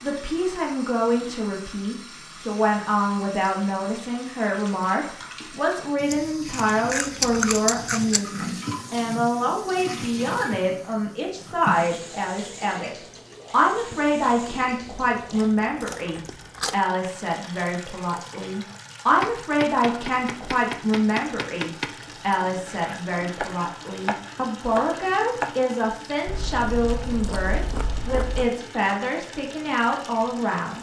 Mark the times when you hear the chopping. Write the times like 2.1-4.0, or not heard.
19.2-25.6.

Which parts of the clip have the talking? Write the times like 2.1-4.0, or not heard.
0.0-30.7.